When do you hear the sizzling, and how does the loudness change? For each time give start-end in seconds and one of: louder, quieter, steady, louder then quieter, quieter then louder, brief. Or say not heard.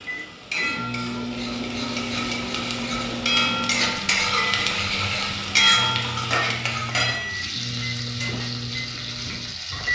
0.0-9.9 louder then quieter.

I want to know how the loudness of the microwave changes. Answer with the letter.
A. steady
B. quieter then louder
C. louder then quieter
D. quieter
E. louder
A.